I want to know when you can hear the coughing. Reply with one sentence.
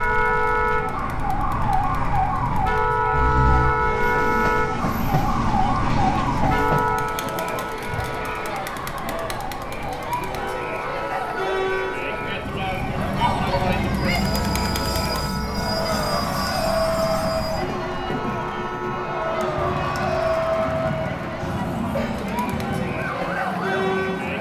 You can hear the coughing from 3.1 to 3.8 s and from 21.4 to 22.4 s.